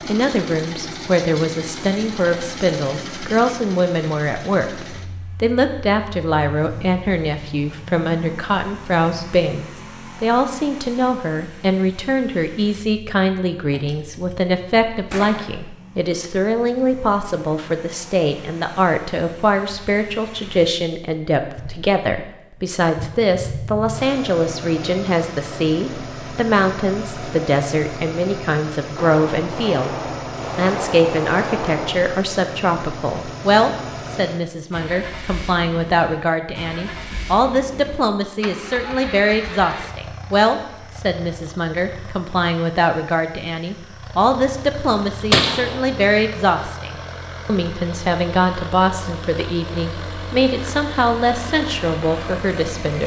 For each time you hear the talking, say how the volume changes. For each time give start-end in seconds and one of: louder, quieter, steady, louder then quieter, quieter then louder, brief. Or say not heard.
0.1-29.9 steady
30.6-53.0 steady.